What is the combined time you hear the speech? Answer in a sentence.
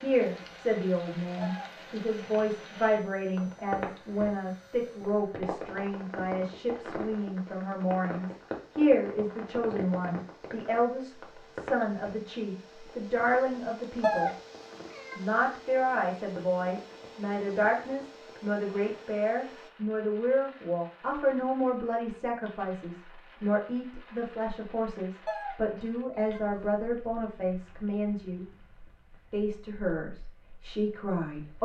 You can hear the speech for 30 seconds altogether.